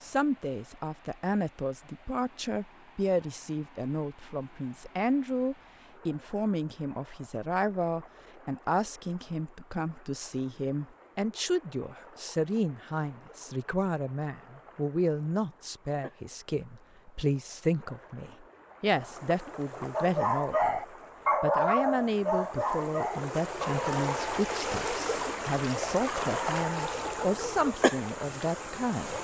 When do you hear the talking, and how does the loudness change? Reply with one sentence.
You can hear the talking from 0.0 to 29.1 s, at a steady volume.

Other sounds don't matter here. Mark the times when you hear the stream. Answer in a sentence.
The stream can be heard from 0.0 to 29.1 s.